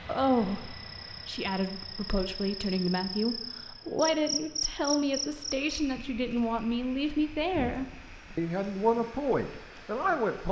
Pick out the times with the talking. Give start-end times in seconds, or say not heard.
0.1-10.4.